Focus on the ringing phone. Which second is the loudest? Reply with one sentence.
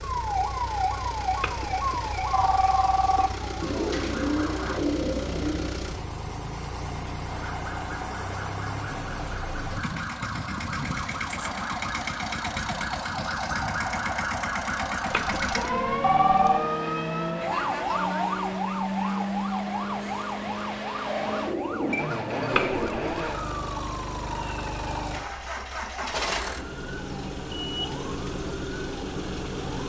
The volume of the ringing phone peaks at 16 seconds.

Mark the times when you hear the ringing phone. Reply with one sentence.
You can hear the ringing phone from 1.4 to 3.3 s, from 15.1 to 16.6 s and from 22.5 to 23.3 s.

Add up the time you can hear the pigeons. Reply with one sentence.
The pigeons can be heard for 4 seconds in total.